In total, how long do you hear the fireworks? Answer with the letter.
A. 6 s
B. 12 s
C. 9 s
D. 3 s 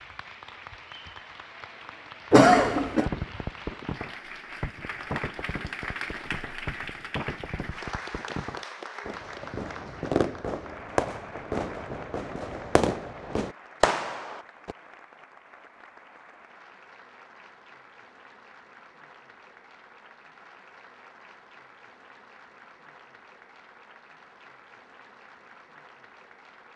B.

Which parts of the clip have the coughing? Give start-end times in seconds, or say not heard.
2.3-3.1.